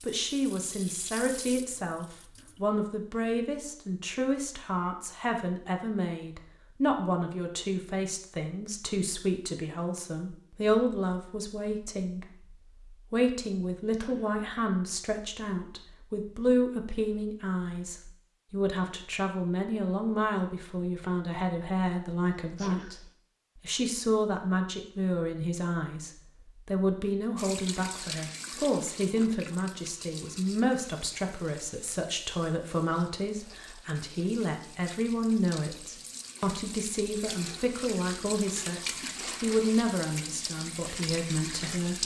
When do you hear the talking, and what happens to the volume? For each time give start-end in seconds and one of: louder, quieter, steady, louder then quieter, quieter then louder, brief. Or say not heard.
0.0-23.0 steady
23.6-42.0 steady.